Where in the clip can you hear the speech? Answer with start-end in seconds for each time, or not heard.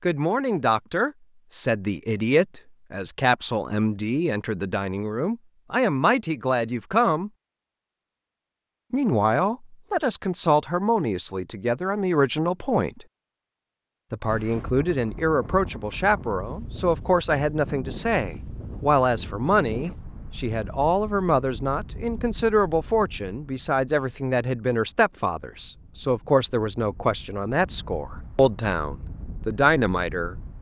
0.0-7.3, 8.9-13.1, 14.1-30.4.